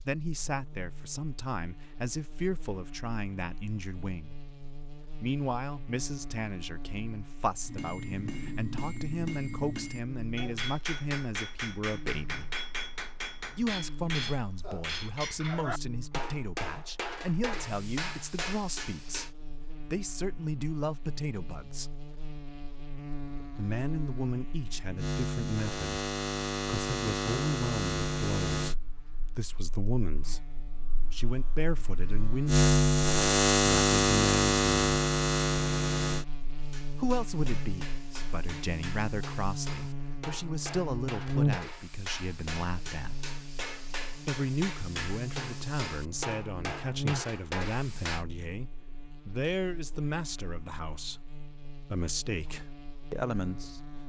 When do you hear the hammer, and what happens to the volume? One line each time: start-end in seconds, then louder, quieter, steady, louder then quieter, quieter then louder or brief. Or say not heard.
7.7-19.3 steady
36.5-48.2 louder.